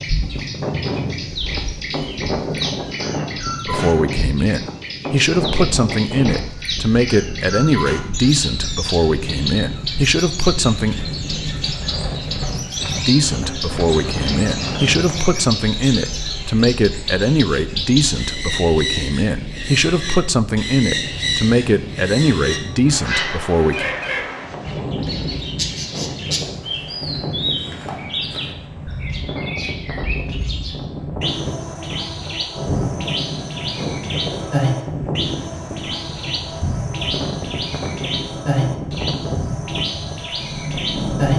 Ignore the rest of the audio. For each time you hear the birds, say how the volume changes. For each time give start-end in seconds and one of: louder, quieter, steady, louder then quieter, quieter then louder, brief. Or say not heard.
0.0-41.3 steady.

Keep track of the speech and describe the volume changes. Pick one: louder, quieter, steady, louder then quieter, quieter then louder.
steady.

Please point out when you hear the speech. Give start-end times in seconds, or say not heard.
3.6-10.9, 12.8-23.9.